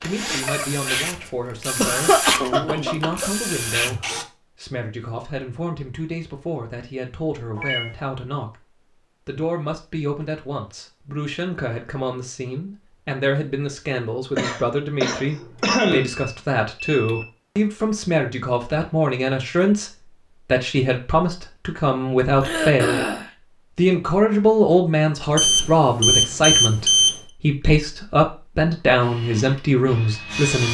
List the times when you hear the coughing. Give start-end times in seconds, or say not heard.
1.8-3.3, 14.3-16.1, 22.4-23.3.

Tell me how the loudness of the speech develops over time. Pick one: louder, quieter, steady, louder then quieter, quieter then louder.
louder.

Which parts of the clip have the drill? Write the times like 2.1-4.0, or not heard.
0.0-4.2, 29.0-30.6.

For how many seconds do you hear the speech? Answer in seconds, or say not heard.
30 s.